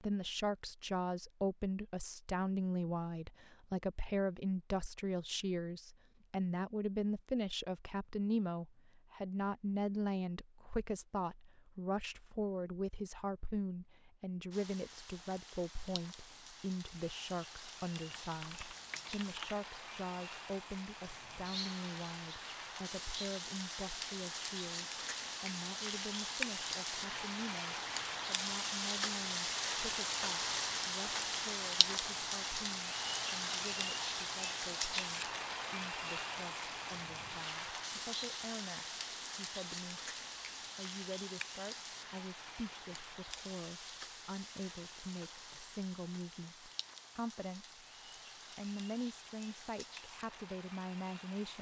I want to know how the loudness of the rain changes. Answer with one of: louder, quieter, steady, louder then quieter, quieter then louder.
louder then quieter.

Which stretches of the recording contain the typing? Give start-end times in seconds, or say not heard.
18.1-19.6.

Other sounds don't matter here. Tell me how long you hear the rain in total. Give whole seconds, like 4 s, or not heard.
37 s.